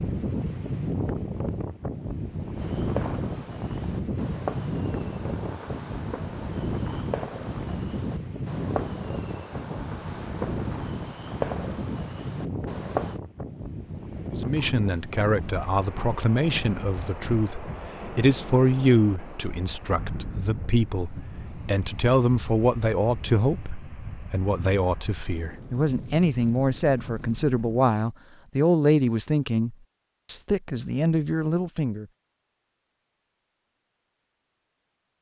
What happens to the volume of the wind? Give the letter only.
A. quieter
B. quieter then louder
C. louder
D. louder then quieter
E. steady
A.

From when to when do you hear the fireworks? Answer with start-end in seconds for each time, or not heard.
2.5-13.2.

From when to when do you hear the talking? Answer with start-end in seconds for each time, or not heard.
14.3-32.0.